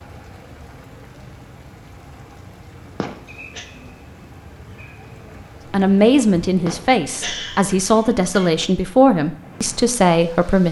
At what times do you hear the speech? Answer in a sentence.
You can hear the speech from 5.7 to 10.6 s.